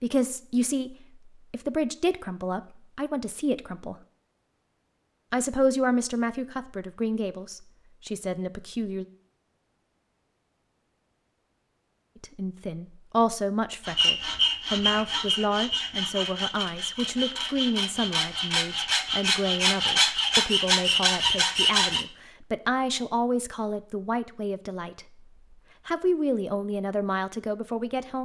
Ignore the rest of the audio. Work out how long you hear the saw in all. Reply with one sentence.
You can hear the saw for 8 seconds altogether.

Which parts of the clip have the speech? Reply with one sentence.
You can hear the speech from 0.0 to 4.0 s, from 5.3 to 9.1 s, from 12.2 to 25.1 s and from 25.9 to 28.2 s.